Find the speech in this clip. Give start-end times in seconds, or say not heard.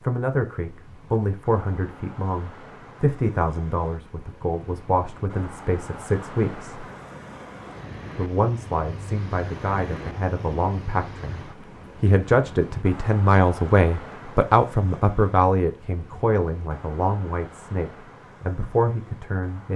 0.0-6.8, 8.2-19.7.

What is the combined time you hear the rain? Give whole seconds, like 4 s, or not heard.
not heard.